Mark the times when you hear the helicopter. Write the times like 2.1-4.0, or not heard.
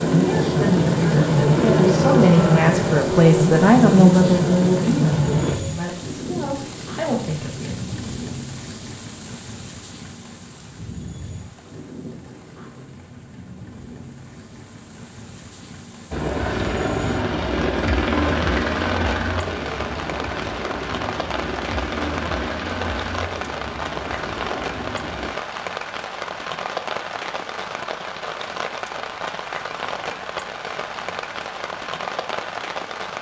0.0-5.5, 16.1-25.3.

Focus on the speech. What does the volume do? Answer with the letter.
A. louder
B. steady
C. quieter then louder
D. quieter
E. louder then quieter
E.